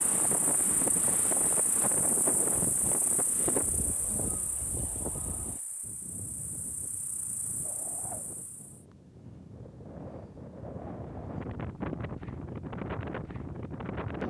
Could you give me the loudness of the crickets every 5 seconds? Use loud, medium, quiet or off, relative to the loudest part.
loud, medium, off.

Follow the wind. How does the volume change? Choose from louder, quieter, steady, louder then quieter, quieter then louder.
quieter then louder.